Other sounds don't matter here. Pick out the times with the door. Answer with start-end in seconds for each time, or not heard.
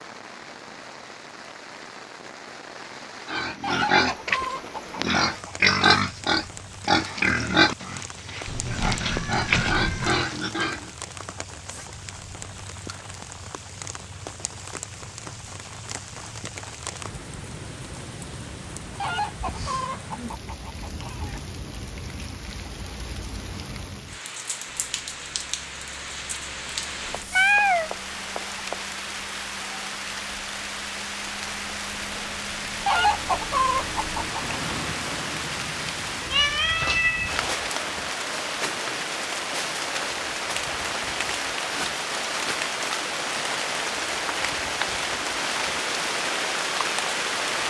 not heard.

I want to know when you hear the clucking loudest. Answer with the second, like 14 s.
33 s.